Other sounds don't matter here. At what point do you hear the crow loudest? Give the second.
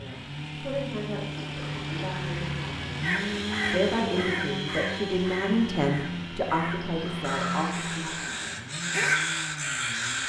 9 s.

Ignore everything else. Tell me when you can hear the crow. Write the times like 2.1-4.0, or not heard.
3.0-10.2.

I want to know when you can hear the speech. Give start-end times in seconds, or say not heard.
0.0-8.2.